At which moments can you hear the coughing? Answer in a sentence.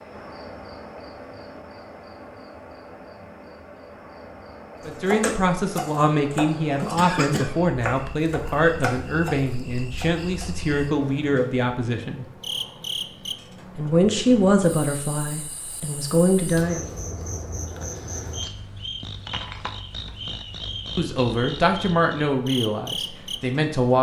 The coughing can be heard from 6.7 to 7.5 s.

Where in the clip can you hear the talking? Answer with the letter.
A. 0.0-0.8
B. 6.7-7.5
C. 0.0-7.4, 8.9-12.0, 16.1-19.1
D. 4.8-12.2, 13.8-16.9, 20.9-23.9
D.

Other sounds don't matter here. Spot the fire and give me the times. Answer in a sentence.
The fire can't be heard in this clip.